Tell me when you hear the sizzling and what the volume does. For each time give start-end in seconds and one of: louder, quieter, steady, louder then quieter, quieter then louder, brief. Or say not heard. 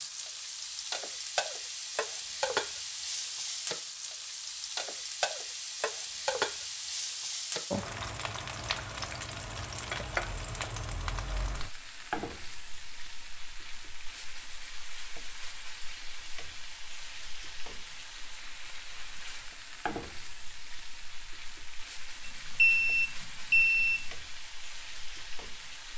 0.0-25.9 quieter.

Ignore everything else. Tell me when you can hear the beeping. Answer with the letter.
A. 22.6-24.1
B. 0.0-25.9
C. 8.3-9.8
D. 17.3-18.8
A.